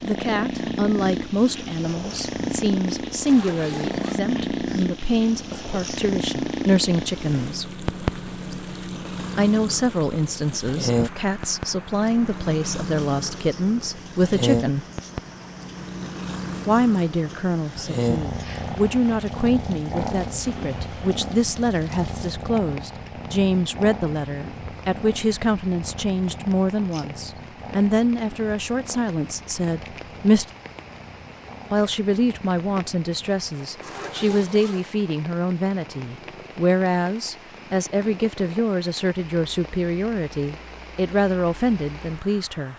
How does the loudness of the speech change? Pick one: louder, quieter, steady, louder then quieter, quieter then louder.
steady.